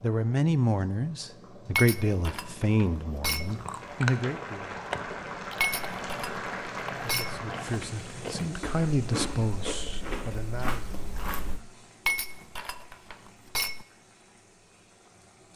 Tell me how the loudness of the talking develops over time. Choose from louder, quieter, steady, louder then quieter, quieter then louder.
quieter.